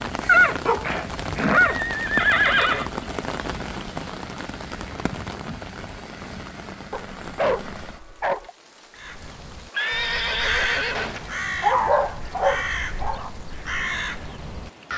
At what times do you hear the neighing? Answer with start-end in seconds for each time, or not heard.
0.2-2.9, 9.7-11.3.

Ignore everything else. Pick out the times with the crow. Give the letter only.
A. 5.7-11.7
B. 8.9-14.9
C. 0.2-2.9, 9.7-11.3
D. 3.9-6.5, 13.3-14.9
B.